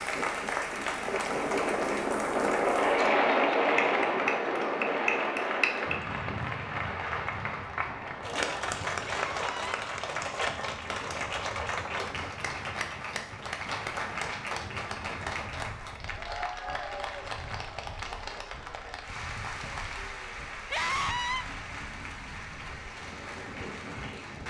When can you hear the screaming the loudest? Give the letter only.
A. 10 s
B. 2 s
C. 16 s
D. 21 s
D.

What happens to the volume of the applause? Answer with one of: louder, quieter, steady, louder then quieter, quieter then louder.
quieter.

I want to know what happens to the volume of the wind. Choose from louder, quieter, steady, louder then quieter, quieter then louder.
quieter.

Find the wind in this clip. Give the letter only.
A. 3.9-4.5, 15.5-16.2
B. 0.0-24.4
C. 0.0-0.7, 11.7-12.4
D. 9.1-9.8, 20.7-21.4
B.